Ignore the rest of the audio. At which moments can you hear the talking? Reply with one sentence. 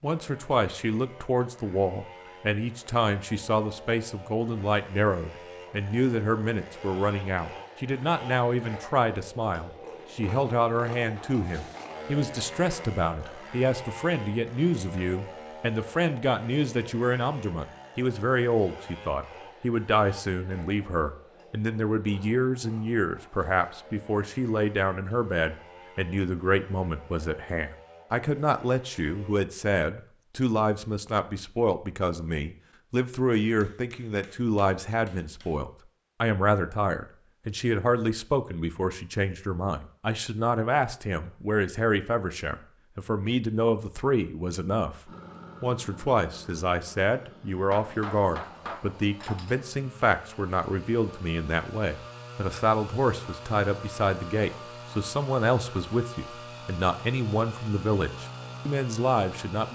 You can hear the talking from 0.0 to 59.7 s.